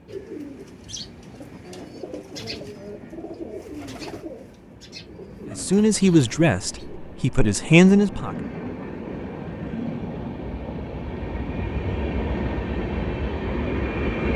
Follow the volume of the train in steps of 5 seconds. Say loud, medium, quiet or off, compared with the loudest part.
quiet, medium, loud.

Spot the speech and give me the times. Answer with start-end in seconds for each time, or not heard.
5.5-8.3.